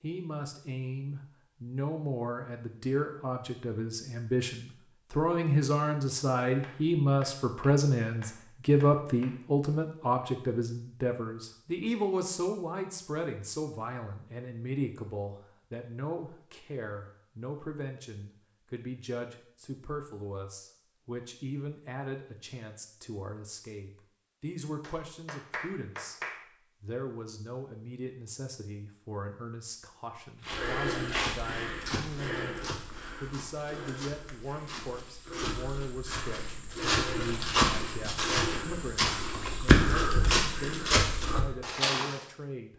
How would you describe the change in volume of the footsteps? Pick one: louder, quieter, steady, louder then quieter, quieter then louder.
quieter then louder.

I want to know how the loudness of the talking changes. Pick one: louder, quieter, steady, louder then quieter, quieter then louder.
quieter.